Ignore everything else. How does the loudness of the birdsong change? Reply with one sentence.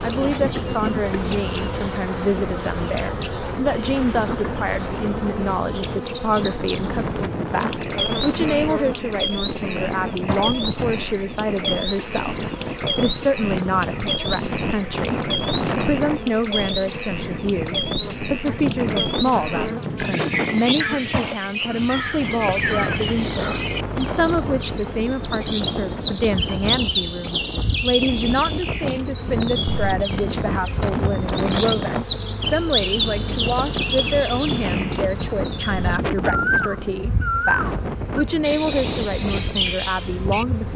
The loudness of the birdsong stays about the same.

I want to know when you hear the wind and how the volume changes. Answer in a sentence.
You can hear the wind from 0.0 to 40.7 s, at a steady volume.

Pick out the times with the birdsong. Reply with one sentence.
You can hear the birdsong from 6.0 to 40.5 s.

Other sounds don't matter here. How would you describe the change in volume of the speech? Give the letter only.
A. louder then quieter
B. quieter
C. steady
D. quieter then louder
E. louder
C.